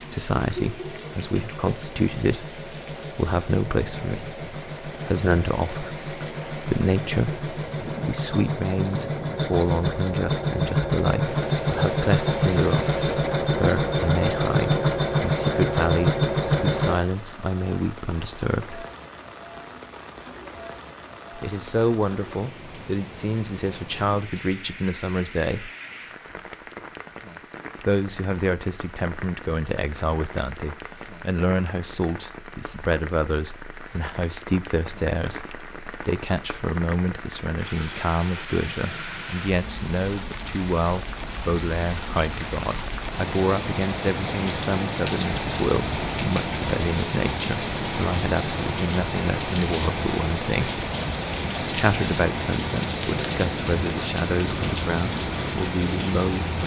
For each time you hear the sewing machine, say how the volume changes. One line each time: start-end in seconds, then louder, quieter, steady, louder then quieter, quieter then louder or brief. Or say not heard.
0.0-17.0 louder.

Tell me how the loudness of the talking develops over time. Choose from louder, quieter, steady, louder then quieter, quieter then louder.
steady.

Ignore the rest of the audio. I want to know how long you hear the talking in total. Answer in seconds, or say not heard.
51 s.